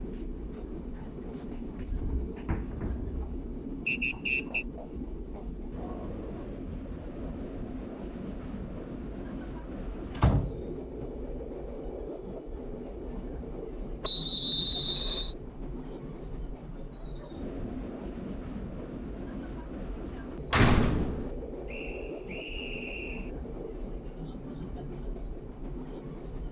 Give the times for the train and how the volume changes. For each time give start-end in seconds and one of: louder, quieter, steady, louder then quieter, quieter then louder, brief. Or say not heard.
0.0-26.4 steady.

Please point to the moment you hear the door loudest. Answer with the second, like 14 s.
21 s.